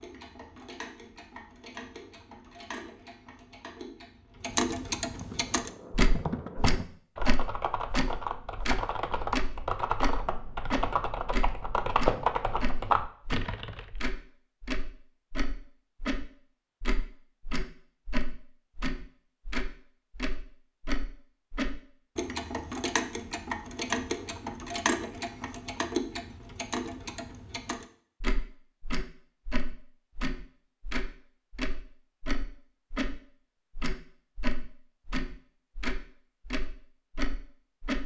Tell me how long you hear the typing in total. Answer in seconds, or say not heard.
9 s.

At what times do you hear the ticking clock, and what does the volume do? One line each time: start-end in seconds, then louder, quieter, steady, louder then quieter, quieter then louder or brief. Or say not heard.
0.0-38.0 steady.